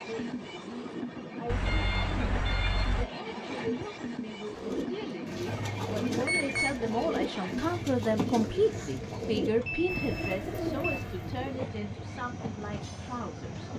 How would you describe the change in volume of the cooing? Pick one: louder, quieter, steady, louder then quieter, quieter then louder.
steady.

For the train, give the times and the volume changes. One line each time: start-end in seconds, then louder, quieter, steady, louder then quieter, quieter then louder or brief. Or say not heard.
0.0-13.7 steady.